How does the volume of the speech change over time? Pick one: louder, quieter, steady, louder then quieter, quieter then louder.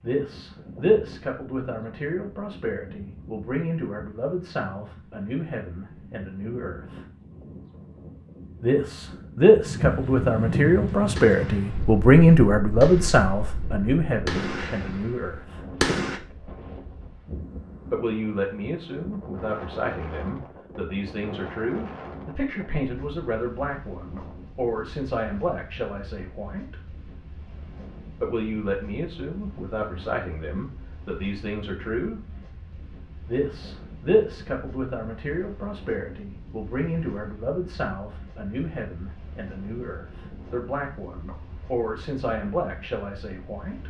louder then quieter.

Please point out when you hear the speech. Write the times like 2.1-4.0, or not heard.
0.0-7.0, 8.6-15.6, 17.9-26.9, 28.2-32.2, 33.2-43.8.